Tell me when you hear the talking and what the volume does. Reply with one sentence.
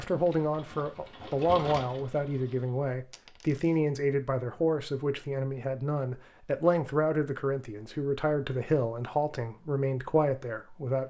The talking can be heard from 0.0 to 11.0 s, at a steady volume.